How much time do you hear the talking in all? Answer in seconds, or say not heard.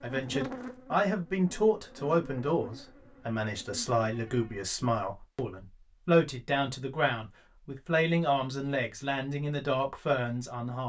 11 s.